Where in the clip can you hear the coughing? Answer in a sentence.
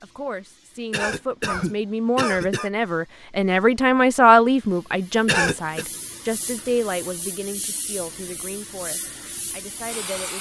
You can hear the coughing from 0.9 to 2.7 s and from 5.2 to 5.8 s.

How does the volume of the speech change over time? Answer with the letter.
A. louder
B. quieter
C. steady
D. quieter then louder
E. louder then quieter
E.